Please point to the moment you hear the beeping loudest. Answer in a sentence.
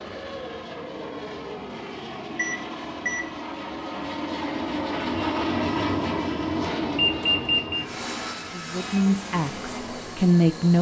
The loudest moment of the beeping is at 7 seconds.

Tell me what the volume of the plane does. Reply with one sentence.
The volume of the plane goes up, then down.